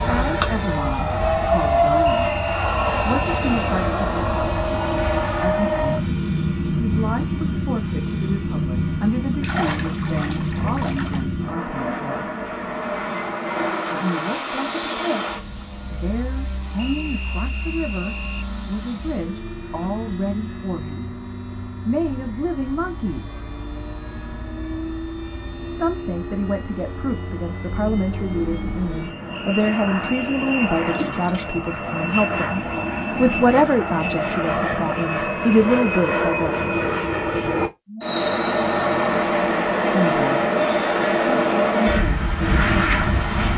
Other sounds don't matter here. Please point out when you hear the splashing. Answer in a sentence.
You can hear the splashing from 9.4 to 11.2 s and from 30.9 to 31.4 s.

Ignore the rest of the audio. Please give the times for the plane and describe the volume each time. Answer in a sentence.
You can hear the plane from 0.0 to 43.5 s, getting quieter then louder.